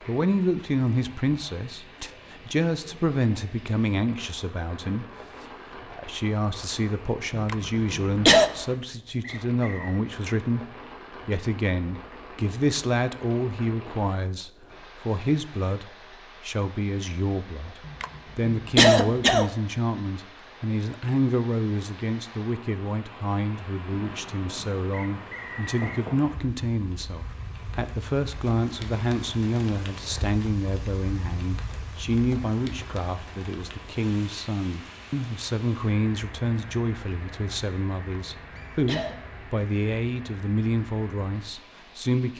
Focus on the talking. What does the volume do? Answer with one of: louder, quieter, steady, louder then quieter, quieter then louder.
steady.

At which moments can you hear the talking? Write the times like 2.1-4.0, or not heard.
0.0-5.0, 5.8-10.7, 11.2-42.3.